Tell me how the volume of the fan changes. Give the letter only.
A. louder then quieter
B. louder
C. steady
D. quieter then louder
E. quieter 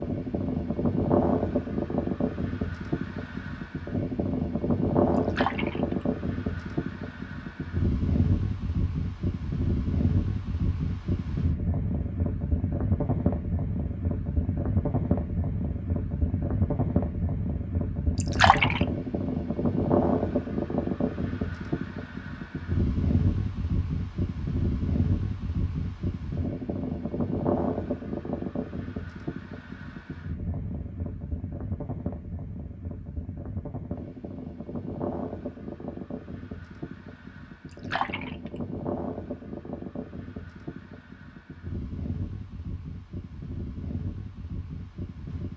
E.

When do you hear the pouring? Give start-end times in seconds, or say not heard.
5.2-6.0, 18.2-18.9, 37.7-38.6.